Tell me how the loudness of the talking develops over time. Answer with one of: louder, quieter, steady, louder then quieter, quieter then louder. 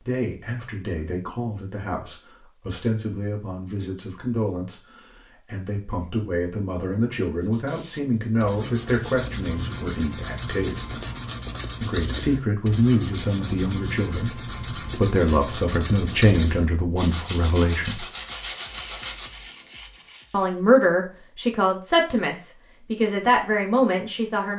louder.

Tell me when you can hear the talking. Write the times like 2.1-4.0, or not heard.
0.1-10.9, 11.8-18.1, 20.3-24.5.